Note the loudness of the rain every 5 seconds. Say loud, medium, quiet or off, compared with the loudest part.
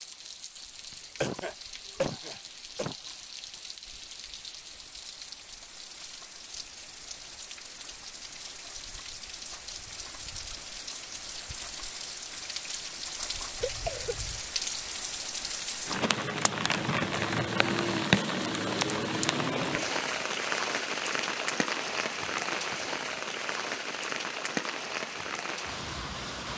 quiet, quiet, medium, loud, loud, medium.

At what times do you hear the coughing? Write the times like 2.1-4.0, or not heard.
1.2-3.0, 13.6-14.4.